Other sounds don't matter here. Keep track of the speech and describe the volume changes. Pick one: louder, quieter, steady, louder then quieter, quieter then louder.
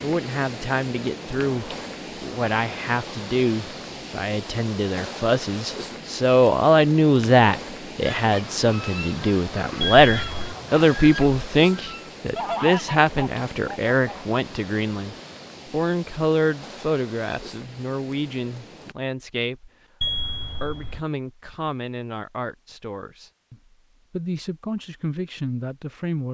louder then quieter.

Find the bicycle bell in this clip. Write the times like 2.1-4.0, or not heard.
9.8-10.5, 20.0-21.1.